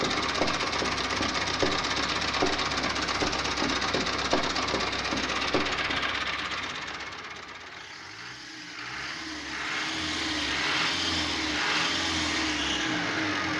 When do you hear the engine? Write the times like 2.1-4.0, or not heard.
0.0-13.5.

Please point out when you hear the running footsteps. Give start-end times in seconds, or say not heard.
0.0-6.0.